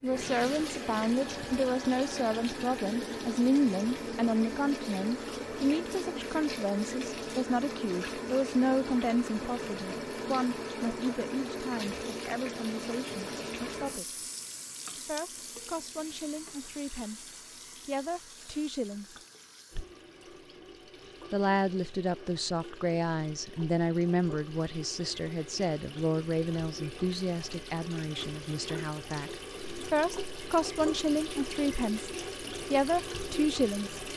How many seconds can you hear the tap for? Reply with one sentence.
You can hear the tap for 34 seconds altogether.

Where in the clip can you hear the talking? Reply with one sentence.
You can hear the talking from 0.0 to 14.1 s, from 14.9 to 19.1 s and from 21.3 to 34.0 s.